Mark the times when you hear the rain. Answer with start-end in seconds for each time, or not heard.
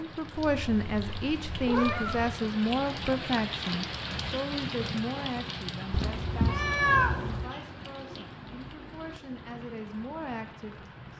0.0-11.1.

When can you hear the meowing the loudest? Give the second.
7 s.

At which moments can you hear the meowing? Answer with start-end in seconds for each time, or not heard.
0.3-2.4, 5.9-7.5.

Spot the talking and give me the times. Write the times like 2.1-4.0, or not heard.
0.0-10.8.